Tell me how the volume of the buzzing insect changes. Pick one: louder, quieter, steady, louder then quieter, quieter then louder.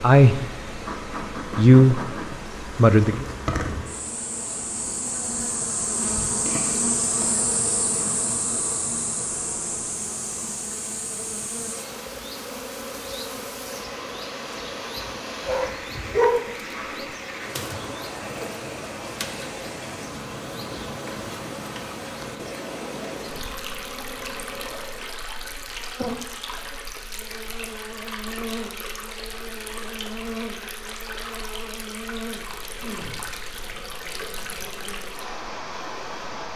quieter.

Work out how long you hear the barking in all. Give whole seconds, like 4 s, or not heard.
2 s.